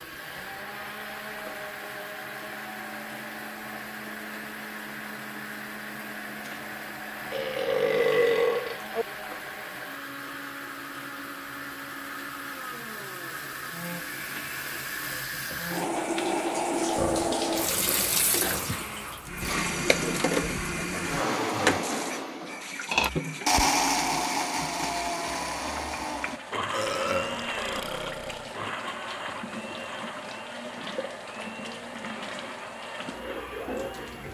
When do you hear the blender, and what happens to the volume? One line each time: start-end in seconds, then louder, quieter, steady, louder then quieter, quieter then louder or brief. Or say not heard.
0.0-34.3 louder then quieter.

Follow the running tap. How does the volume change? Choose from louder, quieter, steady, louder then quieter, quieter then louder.
louder then quieter.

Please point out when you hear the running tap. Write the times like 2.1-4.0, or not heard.
0.0-34.3.